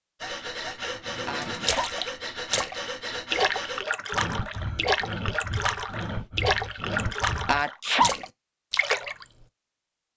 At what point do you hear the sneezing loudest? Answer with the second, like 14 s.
8 s.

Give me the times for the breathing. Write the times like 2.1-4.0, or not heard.
0.2-8.1.